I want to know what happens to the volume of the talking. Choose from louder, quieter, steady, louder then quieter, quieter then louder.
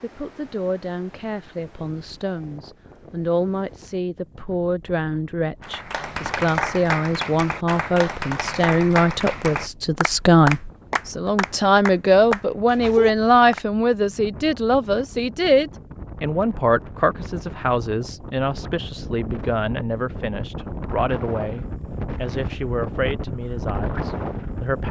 louder then quieter.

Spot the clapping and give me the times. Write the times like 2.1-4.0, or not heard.
5.6-13.6.